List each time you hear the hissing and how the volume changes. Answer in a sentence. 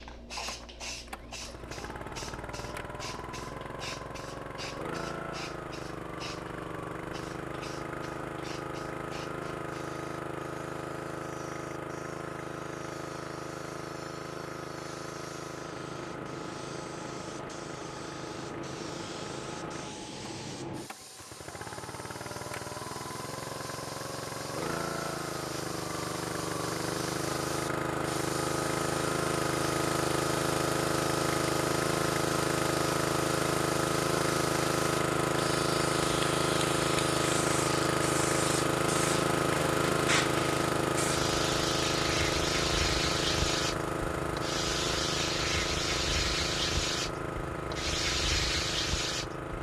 The hissing can be heard from 0.0 to 49.5 s, getting louder.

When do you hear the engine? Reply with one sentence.
The engine can be heard from 0.0 to 49.5 s.